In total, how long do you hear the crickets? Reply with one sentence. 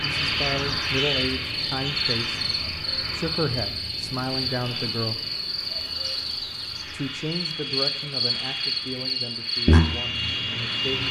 The crickets can be heard for 11 seconds in total.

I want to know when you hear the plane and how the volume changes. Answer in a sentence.
You can hear the plane from 0.0 to 11.0 s, getting quieter then louder.